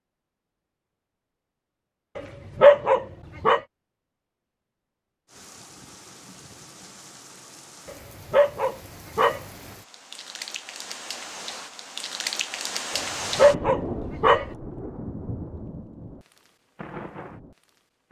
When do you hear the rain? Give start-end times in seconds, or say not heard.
5.2-18.0.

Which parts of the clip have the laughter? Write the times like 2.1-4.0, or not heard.
not heard.